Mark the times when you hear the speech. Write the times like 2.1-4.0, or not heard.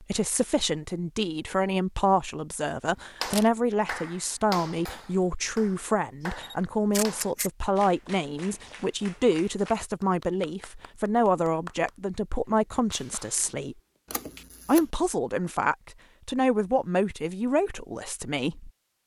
0.0-13.8, 14.7-18.7.